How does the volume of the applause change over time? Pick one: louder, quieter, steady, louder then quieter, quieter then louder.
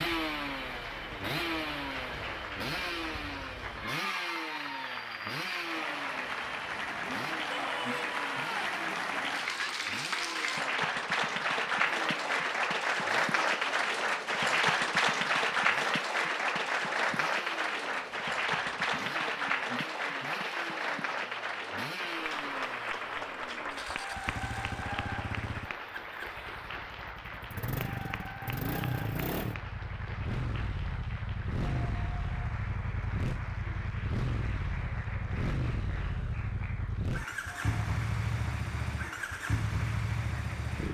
louder then quieter.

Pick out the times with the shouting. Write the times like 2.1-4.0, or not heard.
7.5-8.8.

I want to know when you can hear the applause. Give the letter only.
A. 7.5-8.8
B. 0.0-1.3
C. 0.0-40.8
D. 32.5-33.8
C.